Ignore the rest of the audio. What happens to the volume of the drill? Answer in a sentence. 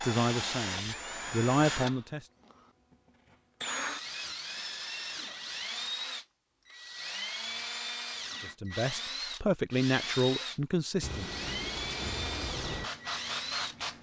The loudness of the drill stays about the same.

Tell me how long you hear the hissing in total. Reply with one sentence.
The hissing can be heard for 5 seconds in total.